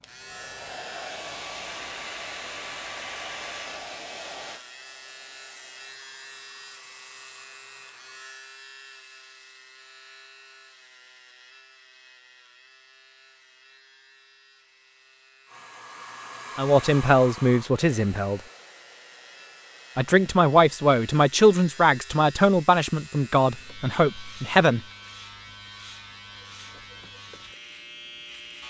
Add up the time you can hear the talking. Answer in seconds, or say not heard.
7 s.